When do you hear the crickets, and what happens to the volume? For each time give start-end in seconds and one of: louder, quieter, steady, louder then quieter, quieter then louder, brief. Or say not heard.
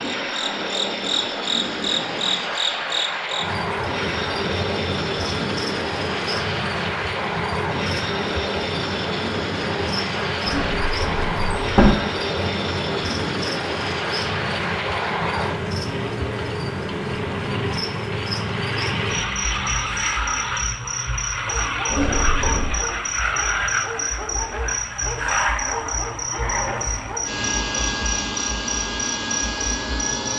0.0-30.3 steady.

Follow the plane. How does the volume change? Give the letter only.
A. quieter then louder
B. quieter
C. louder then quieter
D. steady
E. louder
D.